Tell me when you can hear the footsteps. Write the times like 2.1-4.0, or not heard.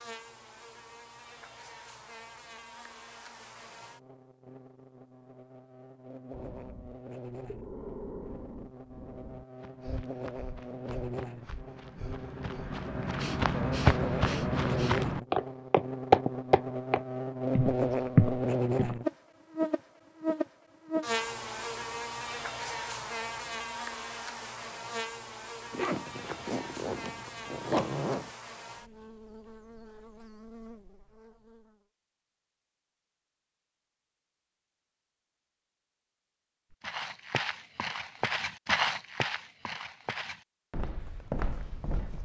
9.6-18.9, 36.8-42.2.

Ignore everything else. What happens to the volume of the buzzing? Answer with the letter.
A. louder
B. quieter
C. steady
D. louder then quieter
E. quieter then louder
D.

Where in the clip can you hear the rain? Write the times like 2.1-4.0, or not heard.
not heard.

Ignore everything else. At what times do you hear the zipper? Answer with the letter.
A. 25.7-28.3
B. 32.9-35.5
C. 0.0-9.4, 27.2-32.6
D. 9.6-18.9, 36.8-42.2
A.